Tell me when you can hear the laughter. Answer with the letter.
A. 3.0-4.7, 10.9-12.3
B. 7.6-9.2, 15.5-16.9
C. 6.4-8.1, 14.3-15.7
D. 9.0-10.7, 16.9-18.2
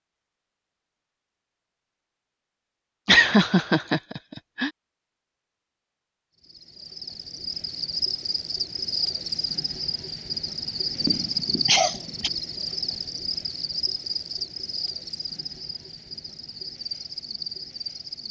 A.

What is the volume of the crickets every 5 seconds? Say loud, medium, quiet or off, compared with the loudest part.
off, loud, loud, medium.